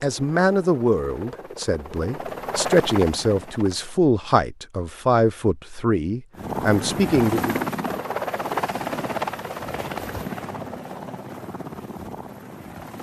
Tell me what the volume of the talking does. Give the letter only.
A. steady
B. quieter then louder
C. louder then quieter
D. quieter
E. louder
A.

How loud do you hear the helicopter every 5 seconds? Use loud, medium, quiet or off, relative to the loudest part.
medium, loud, medium.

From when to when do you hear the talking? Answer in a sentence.
You can hear the talking from 0.0 to 7.7 s.